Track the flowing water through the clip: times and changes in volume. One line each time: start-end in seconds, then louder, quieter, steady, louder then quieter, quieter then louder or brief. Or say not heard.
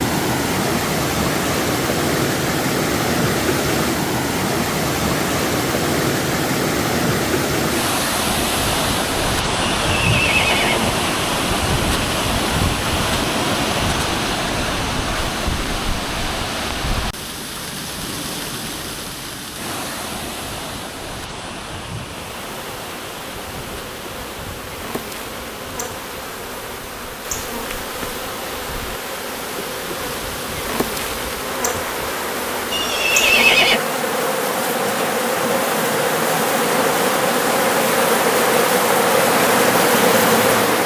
0.0-40.8 quieter then louder.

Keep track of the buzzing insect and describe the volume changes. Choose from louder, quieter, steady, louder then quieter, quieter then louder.
louder.